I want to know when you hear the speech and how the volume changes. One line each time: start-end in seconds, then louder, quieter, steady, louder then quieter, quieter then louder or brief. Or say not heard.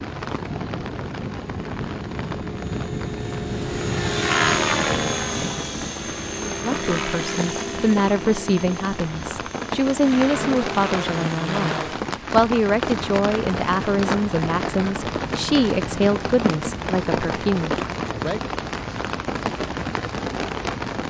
6.4-18.4 steady.